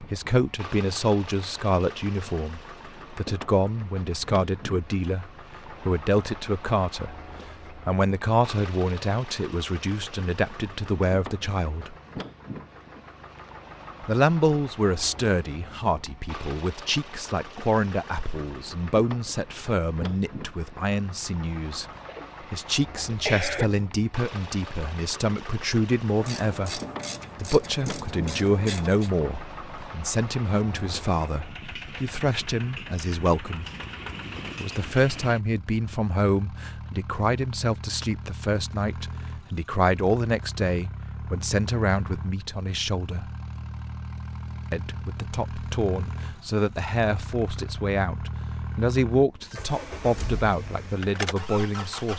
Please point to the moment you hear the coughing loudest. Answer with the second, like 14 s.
23 s.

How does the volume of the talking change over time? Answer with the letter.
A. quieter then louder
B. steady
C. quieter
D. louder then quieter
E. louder
B.